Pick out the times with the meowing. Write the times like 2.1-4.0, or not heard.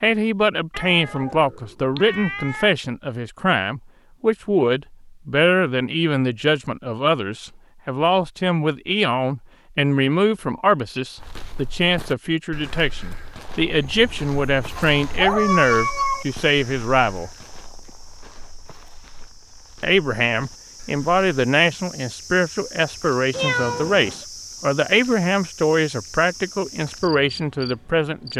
0.7-2.7, 14.8-16.2, 23.3-24.2.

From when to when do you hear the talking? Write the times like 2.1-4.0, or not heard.
0.0-17.3, 19.8-28.3.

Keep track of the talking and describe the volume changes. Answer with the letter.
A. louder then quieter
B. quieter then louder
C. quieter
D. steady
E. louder
D.